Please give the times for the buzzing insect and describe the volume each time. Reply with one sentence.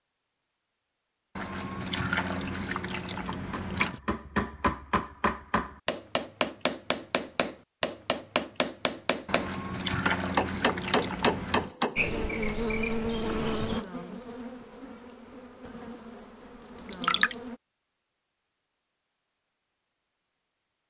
The buzzing insect can be heard from 11.9 to 17.6 s, getting quieter.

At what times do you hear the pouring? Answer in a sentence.
The pouring can be heard from 1.4 to 4.0 s, from 9.2 to 11.8 s and from 16.8 to 17.4 s.